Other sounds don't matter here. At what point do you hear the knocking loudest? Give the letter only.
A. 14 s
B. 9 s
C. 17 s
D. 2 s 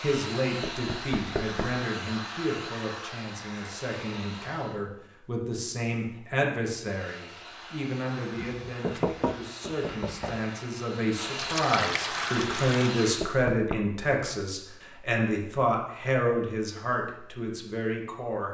B.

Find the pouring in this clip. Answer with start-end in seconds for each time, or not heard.
11.3-12.8.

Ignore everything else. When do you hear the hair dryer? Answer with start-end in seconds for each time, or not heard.
0.0-4.8, 6.8-13.3.